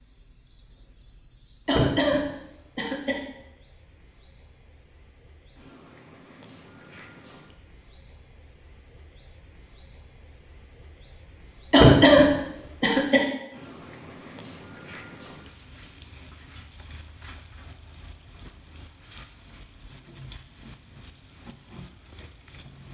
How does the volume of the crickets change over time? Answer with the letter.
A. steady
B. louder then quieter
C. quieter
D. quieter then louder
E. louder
E.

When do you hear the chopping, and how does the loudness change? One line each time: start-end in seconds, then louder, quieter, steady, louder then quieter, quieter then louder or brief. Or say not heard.
not heard.